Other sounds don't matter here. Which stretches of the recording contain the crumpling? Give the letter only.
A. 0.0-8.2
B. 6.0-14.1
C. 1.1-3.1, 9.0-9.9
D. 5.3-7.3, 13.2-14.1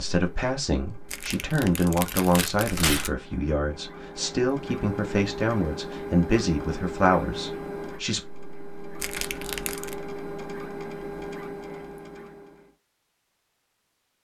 C.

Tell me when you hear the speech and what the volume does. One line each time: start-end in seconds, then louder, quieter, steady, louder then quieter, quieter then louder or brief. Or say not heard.
0.0-8.2 steady.